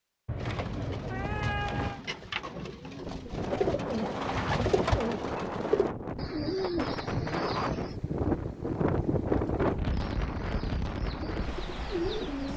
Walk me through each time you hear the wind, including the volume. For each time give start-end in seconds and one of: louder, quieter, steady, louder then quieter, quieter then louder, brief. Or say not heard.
3.0-12.5 louder then quieter.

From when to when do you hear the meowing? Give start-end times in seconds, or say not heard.
0.2-2.0.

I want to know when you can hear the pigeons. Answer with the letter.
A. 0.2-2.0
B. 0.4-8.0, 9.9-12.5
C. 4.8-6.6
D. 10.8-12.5
B.